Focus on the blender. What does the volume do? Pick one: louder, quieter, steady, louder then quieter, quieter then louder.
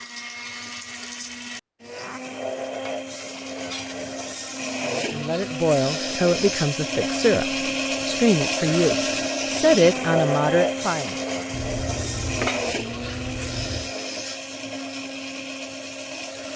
louder then quieter.